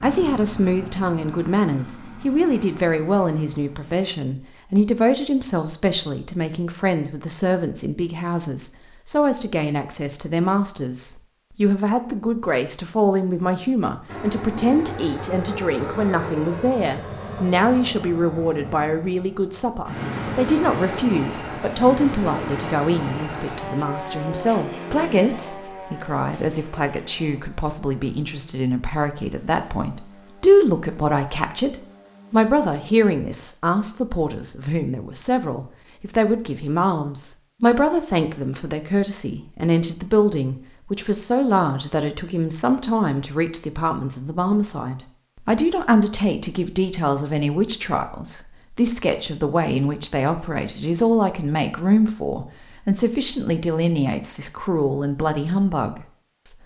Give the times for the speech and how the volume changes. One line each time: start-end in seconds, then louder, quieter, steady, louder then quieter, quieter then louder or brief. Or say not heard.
0.0-56.5 steady.